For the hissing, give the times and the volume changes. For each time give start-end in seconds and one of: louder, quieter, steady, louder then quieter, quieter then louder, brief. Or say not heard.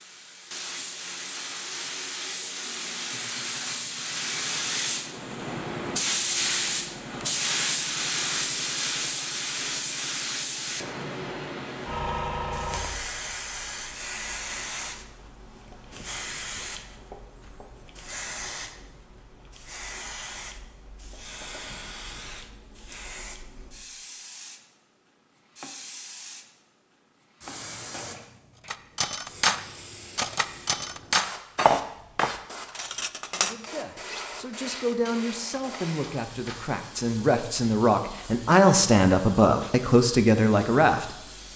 0.0-41.5 quieter.